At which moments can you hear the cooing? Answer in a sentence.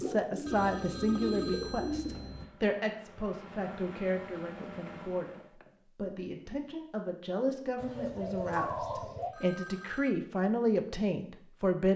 You can hear the cooing from 0.0 to 2.5 s and from 7.8 to 9.3 s.